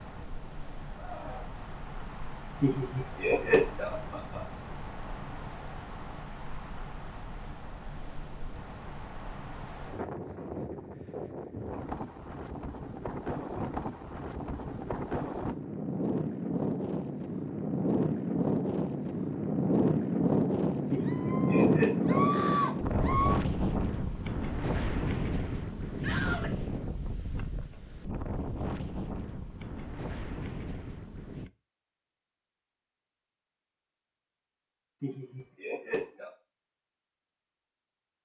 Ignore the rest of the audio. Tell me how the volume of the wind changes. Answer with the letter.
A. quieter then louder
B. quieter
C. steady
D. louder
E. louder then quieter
E.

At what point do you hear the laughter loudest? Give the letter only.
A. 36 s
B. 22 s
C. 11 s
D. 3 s
D.